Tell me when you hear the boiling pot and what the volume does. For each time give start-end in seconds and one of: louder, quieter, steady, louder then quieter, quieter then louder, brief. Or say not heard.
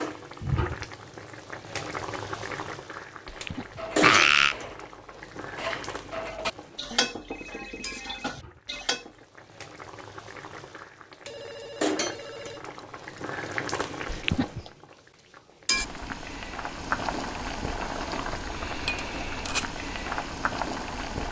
0.0-21.2 quieter then louder.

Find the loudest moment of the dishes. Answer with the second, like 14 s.
7 s.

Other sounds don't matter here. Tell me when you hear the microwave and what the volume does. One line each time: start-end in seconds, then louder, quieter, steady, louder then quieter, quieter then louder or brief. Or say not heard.
not heard.